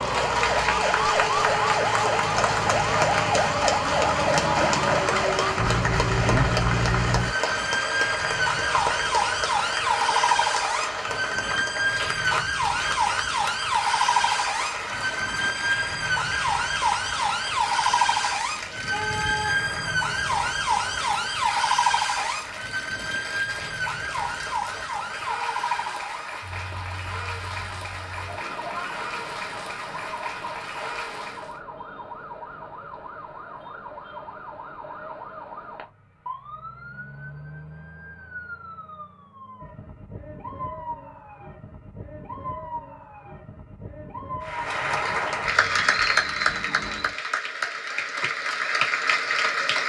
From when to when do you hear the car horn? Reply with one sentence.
You can hear the car horn from 18.8 to 20.5 s.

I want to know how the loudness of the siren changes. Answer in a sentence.
The volume of the siren goes down.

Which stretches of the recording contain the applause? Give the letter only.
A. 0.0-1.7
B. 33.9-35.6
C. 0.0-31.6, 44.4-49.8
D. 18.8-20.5
C.